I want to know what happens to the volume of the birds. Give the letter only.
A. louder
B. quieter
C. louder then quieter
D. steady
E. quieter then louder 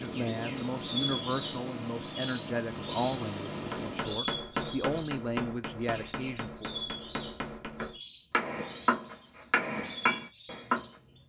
B.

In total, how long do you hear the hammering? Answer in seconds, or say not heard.
7 s.